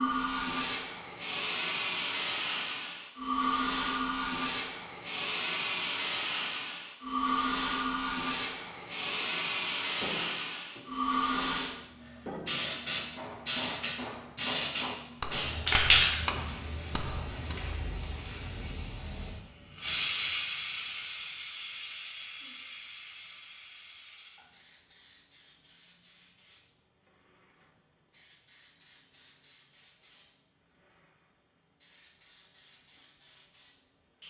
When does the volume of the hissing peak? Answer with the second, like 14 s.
16 s.